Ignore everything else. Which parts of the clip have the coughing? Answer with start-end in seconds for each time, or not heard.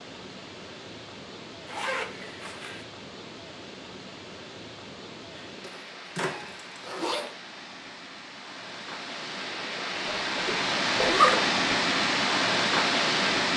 not heard.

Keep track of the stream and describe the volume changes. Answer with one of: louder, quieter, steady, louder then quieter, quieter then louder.
louder.